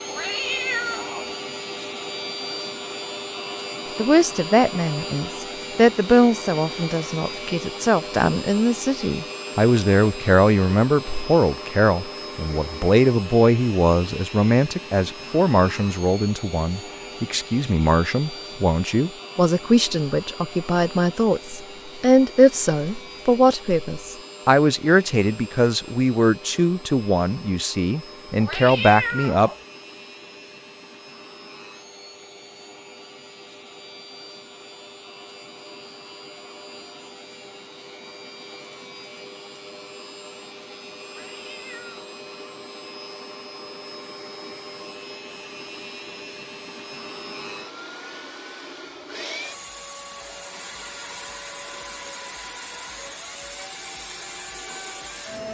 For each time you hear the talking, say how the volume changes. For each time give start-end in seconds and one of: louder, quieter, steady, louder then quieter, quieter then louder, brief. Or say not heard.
4.0-29.5 steady.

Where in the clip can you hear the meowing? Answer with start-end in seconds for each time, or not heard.
0.1-1.3, 28.4-29.6, 41.0-42.1.